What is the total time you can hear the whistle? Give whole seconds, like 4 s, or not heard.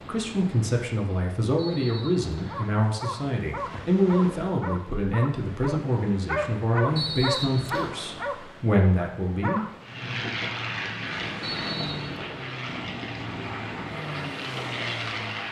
3 s.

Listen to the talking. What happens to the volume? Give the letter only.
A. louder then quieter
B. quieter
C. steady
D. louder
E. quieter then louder
C.